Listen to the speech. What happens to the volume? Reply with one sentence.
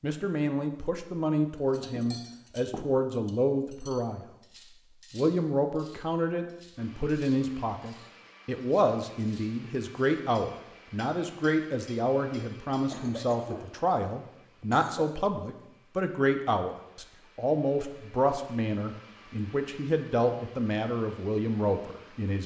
The volume of the speech stays about the same.